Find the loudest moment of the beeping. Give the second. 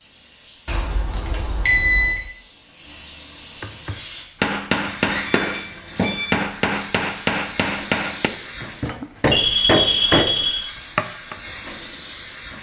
2 s.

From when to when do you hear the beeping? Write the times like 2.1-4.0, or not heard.
0.7-2.2, 5.2-6.3, 9.3-10.7.